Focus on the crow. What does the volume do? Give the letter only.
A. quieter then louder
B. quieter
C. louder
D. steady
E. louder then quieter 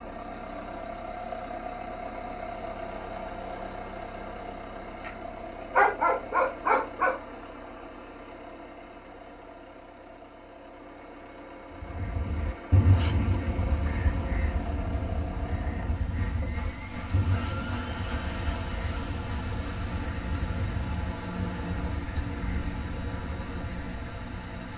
B.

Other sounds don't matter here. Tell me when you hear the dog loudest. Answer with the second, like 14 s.
6 s.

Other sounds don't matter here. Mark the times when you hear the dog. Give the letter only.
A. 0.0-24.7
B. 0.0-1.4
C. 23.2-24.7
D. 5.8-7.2
D.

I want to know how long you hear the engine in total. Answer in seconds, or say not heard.
25 s.